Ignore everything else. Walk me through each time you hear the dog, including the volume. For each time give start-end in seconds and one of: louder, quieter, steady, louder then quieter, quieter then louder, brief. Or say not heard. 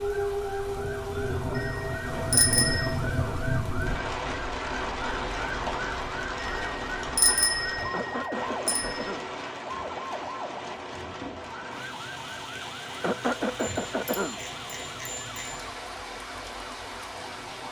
not heard.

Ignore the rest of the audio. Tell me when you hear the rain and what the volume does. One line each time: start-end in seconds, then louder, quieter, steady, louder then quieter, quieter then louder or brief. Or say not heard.
0.0-17.6 quieter.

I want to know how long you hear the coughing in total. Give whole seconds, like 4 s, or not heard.
4 s.